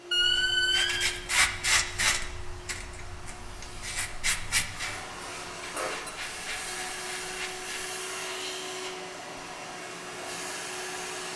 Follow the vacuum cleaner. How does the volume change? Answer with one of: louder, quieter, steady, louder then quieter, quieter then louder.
louder.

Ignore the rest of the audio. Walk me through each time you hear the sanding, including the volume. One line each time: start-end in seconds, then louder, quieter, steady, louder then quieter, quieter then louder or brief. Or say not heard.
0.1-7.8 quieter.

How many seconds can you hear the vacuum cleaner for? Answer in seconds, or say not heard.
11 s.